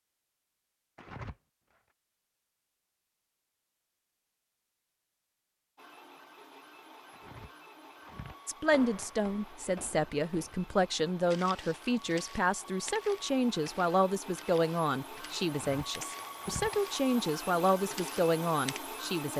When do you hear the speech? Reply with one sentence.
The speech can be heard from 8.4 to 19.3 s.